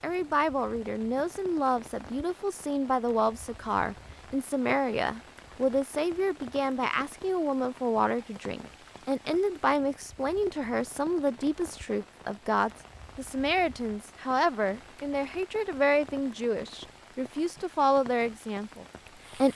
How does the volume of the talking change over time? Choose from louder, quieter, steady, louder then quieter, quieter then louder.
steady.